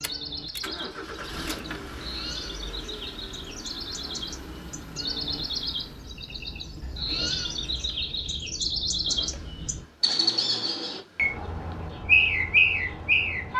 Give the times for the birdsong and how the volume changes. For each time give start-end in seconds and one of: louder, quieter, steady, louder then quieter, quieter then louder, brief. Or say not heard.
0.0-13.5 louder.